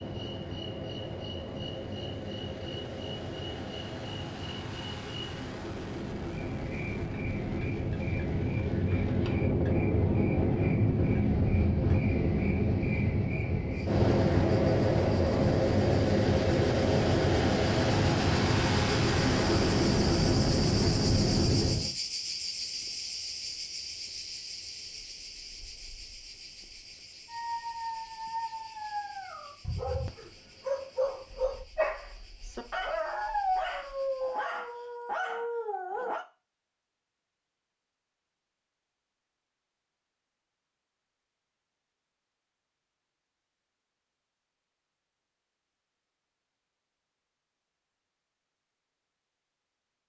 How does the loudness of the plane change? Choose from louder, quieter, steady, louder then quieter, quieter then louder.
louder.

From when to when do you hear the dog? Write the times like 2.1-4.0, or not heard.
27.2-36.2.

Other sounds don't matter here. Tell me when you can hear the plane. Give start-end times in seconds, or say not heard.
0.0-21.9.